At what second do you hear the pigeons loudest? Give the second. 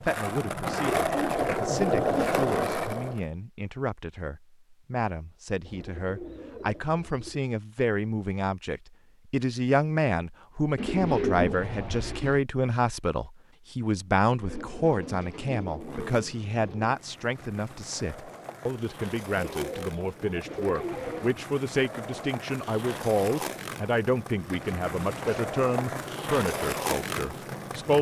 11 s.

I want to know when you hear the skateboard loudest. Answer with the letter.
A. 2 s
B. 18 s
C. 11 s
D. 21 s
A.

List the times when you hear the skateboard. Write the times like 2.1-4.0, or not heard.
0.0-3.2, 15.6-27.9.